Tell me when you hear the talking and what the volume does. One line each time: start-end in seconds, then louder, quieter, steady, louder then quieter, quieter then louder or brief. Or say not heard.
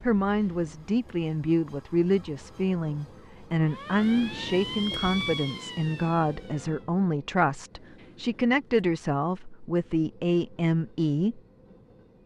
0.0-11.4 steady.